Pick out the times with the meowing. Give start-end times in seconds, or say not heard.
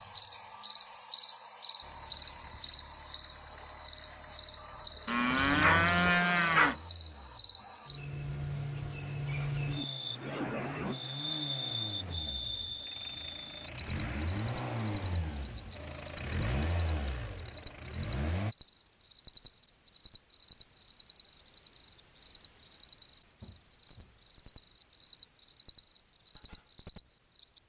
not heard.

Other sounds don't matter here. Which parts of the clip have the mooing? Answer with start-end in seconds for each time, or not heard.
5.0-6.8.